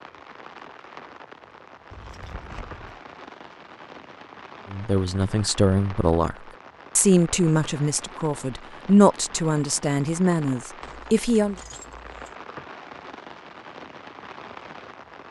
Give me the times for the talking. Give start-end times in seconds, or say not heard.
4.7-11.6.